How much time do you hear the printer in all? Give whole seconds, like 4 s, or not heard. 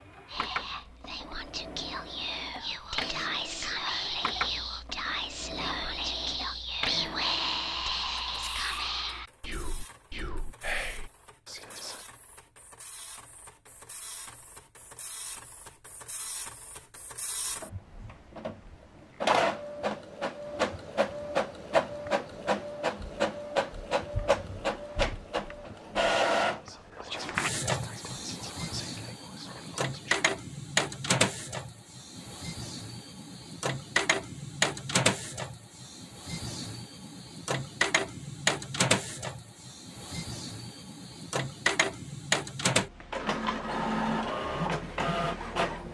46 s.